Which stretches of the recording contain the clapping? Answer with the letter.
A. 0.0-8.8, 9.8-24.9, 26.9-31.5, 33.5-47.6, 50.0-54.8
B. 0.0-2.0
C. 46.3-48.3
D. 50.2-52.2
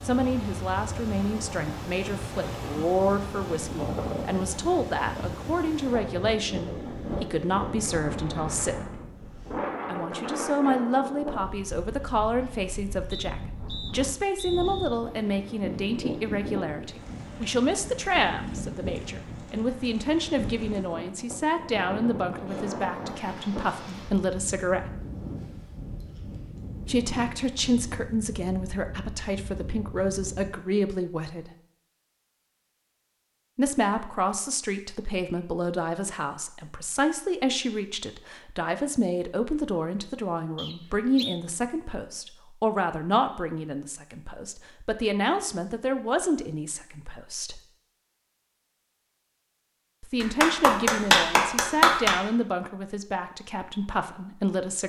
D.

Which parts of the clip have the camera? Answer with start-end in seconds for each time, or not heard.
not heard.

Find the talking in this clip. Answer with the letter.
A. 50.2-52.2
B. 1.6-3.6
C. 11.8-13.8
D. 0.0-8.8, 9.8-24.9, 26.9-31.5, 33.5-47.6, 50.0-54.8
D.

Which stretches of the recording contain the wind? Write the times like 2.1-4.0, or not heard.
0.0-30.6.